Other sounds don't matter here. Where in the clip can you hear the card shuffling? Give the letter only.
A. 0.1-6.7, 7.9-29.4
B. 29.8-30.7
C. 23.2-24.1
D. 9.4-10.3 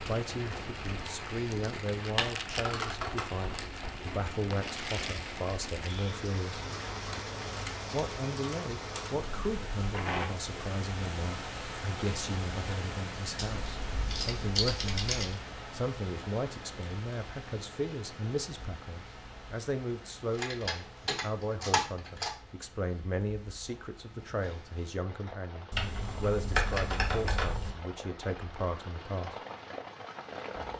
D.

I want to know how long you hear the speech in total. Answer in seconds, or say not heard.
28 s.